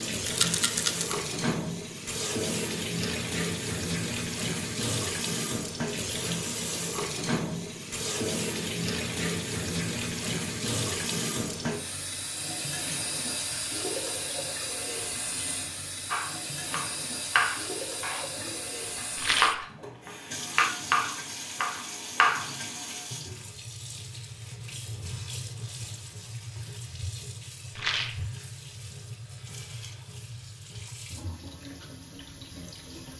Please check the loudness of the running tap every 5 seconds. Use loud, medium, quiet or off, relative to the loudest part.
loud, loud, loud, medium, medium, medium, quiet.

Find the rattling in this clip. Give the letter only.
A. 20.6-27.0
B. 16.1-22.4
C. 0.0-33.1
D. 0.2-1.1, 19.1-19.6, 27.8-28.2
D.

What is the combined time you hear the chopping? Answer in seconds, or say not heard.
6 s.